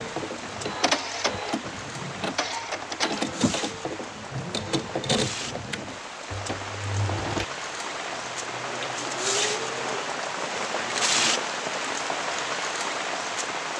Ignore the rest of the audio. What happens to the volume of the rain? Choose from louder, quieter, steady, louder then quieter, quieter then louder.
louder.